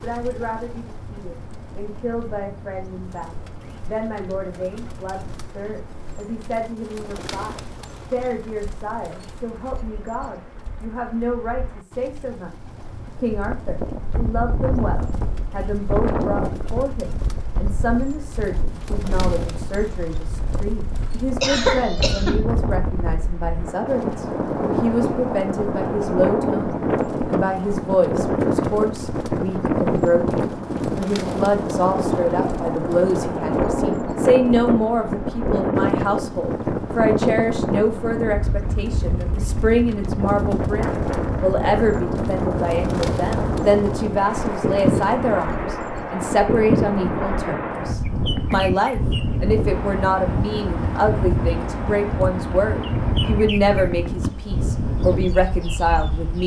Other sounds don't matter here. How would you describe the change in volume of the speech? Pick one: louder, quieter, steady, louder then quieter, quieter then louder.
louder.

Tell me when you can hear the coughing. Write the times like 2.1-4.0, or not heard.
21.4-22.4.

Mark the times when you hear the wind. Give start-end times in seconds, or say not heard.
13.3-56.4.